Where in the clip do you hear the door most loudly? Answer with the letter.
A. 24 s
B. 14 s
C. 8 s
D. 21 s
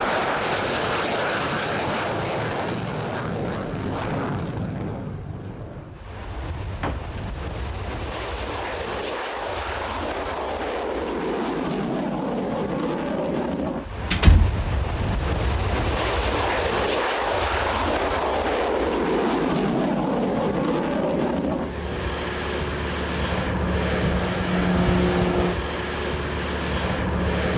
B.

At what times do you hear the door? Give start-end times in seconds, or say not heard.
6.8-7.2, 13.9-14.6.